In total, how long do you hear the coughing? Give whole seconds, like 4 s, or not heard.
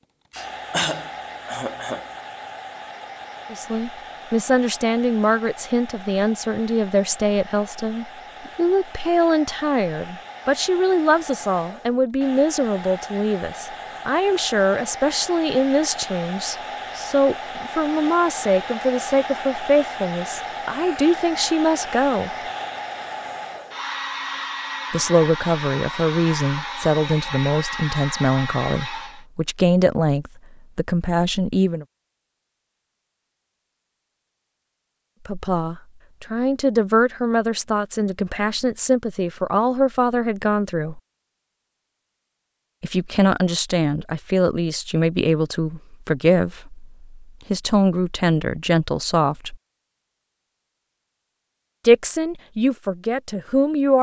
2 s.